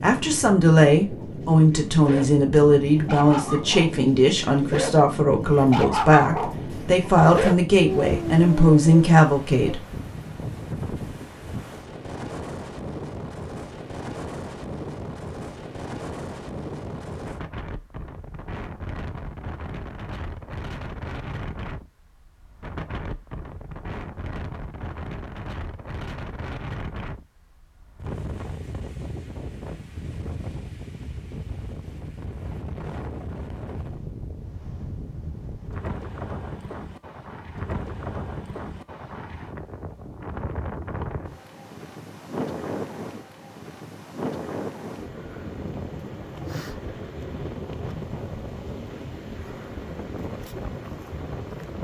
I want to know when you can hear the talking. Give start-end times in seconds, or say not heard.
0.0-9.8.